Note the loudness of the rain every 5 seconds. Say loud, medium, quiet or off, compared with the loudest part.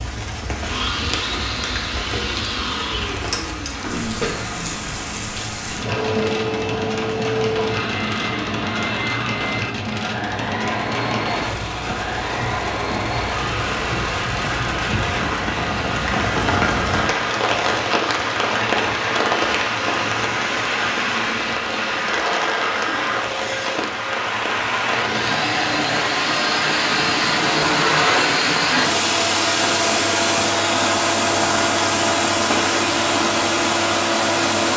medium, medium, medium, loud, loud, medium, medium.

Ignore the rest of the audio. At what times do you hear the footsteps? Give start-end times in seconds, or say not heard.
not heard.